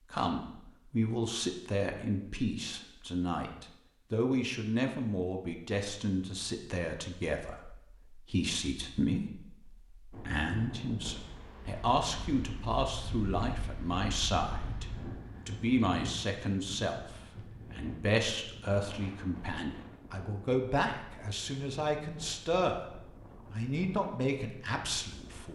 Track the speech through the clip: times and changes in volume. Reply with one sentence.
The speech can be heard from 0.0 to 22.9 s, at a steady volume; and briefly from 23.5 to 25.5 s.